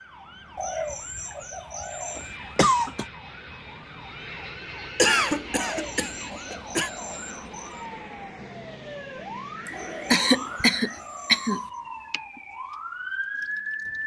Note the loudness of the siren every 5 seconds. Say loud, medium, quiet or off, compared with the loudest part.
quiet, medium, loud.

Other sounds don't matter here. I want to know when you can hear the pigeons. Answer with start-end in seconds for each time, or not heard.
0.6-2.3, 5.5-7.8, 9.7-11.8.